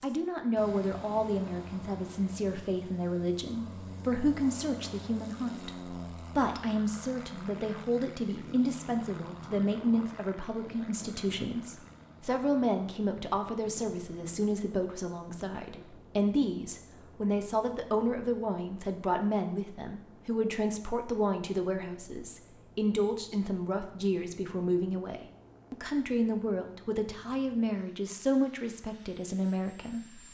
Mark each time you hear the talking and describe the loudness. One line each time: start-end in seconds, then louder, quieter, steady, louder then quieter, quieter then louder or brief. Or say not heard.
0.0-30.2 steady.